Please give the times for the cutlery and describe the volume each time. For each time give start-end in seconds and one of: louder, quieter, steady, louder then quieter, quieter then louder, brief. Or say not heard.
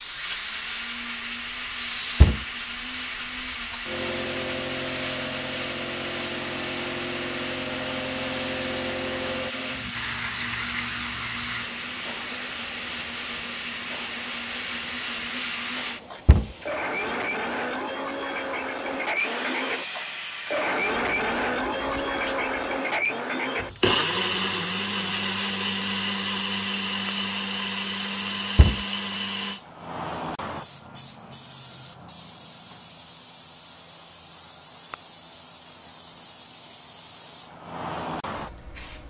not heard.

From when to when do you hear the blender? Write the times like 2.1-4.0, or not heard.
0.0-29.6.